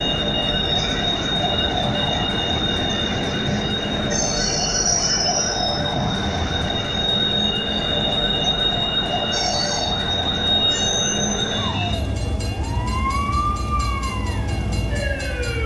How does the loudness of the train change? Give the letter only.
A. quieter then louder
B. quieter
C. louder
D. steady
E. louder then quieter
B.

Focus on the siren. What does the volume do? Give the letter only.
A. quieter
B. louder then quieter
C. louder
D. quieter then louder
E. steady
E.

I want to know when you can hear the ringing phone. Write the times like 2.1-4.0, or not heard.
not heard.